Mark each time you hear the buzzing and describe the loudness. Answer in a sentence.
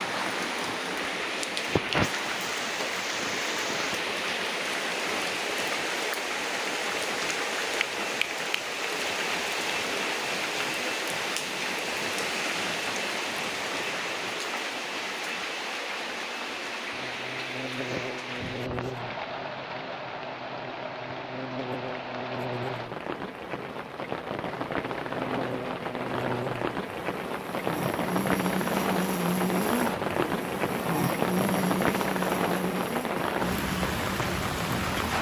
You can hear the buzzing from 16.9 to 35.0 s, getting louder.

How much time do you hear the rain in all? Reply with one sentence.
The rain can be heard for 35 seconds in total.